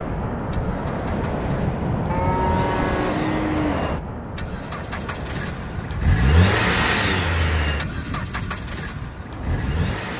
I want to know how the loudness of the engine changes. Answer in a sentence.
The loudness of the engine goes up, then down.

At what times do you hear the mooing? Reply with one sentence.
You can hear the mooing from 2.1 to 3.6 s.